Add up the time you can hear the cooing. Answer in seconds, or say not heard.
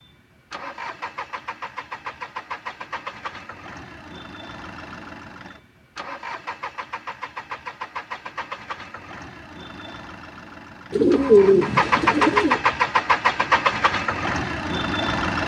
2 s.